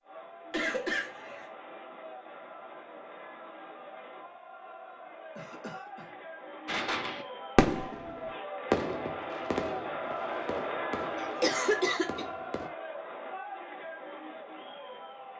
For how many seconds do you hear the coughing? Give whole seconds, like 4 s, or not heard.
3 s.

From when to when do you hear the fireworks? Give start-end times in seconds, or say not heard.
6.7-8.1, 8.7-12.7.